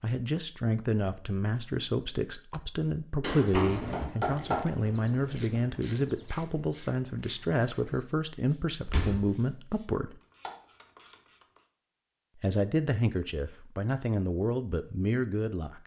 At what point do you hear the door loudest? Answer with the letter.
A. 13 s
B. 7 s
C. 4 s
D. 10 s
C.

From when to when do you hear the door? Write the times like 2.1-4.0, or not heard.
3.5-4.1, 8.8-9.4.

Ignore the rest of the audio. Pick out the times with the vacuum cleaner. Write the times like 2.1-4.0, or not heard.
not heard.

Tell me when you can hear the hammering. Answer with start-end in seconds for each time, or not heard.
3.2-4.8.